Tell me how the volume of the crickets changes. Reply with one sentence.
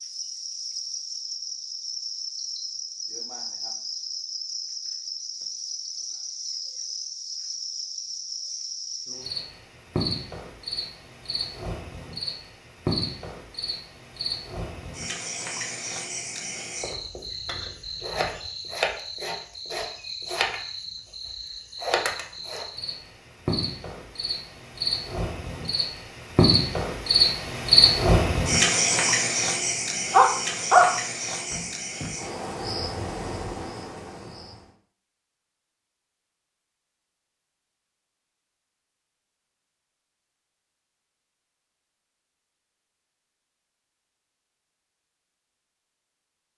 The loudness of the crickets goes up.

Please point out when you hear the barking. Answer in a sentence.
The barking can be heard from 30.1 to 30.9 s and from 31.5 to 32.1 s.